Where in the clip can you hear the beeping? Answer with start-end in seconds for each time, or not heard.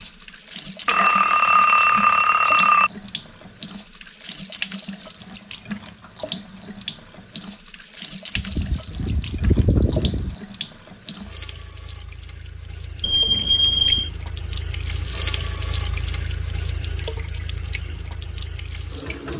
0.8-2.9, 8.3-10.3, 13.0-14.1.